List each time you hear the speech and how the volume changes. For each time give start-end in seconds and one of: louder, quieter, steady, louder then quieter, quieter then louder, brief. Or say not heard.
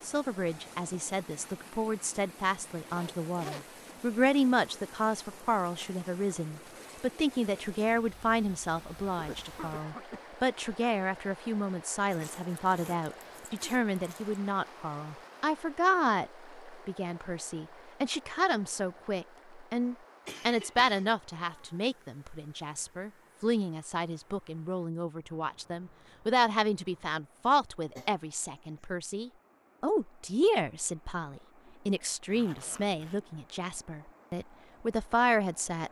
0.0-35.8 steady.